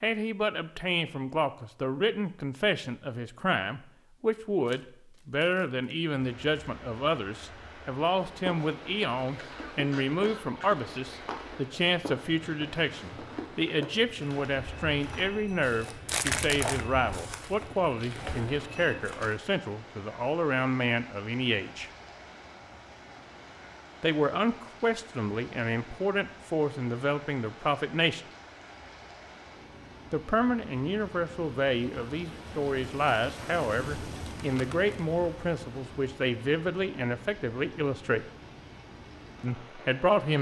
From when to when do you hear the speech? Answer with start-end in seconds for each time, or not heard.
0.0-21.9, 24.0-28.2, 30.1-38.2, 39.4-40.3.